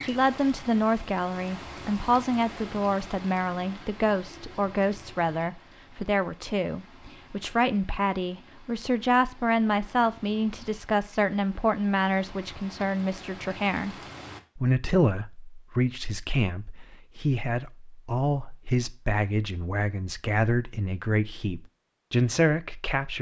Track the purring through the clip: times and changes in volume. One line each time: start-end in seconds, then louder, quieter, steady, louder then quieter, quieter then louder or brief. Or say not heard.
not heard.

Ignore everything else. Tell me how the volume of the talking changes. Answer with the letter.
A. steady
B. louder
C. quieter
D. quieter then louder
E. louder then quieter
A.